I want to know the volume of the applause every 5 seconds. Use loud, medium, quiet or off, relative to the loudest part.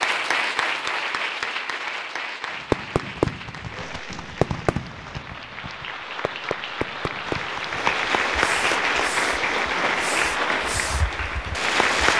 medium, loud, loud.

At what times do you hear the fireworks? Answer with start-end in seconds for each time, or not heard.
2.6-12.1.